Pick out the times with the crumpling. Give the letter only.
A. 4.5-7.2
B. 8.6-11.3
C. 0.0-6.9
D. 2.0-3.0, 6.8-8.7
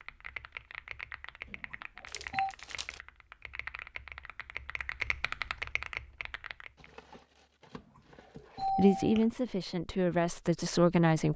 D.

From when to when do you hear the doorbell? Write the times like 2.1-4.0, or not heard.
1.4-2.5, 8.6-9.2.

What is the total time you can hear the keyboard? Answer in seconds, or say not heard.
7 s.